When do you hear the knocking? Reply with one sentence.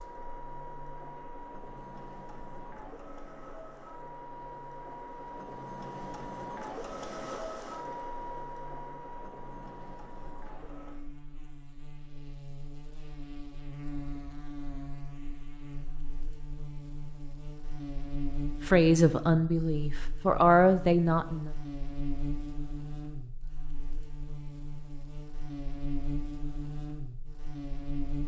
The knocking can't be heard in this clip.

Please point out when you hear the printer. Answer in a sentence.
You can hear the printer from 0.0 to 11.0 s.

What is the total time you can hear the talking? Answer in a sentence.
You can hear the talking for 3 seconds altogether.